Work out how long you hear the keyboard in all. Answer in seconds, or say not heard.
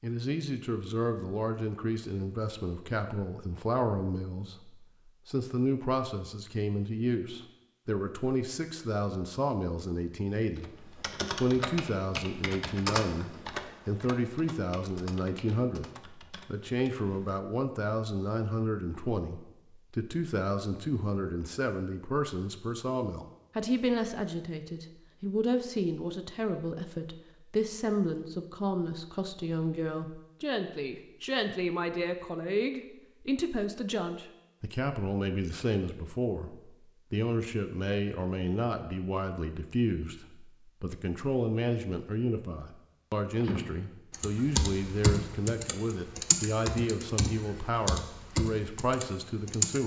13 s.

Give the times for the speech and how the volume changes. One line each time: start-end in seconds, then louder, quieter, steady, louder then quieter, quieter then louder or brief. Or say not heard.
0.0-49.8 steady.